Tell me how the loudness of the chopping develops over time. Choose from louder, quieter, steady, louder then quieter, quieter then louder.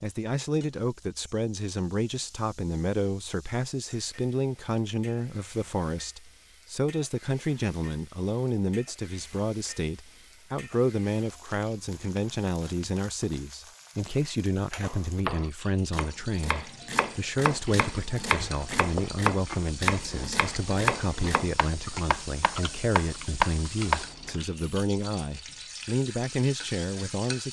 louder.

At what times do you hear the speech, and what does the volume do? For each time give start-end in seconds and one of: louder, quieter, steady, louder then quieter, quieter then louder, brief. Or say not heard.
0.0-27.4 steady.